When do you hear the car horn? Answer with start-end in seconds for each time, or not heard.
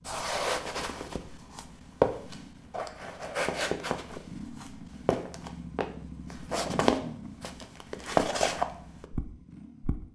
not heard.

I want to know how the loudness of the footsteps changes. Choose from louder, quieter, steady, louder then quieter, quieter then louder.
quieter then louder.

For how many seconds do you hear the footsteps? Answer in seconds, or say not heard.
10 s.